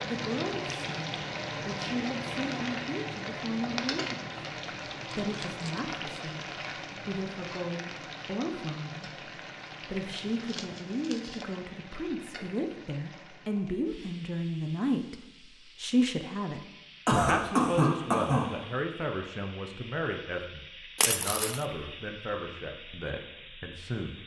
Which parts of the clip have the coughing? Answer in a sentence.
You can hear the coughing from 17.1 to 18.5 s.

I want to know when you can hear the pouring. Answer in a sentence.
You can't hear the pouring here.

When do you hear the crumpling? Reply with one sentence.
You can hear the crumpling from 5.2 to 5.8 s, from 10.3 to 11.4 s and from 20.9 to 21.6 s.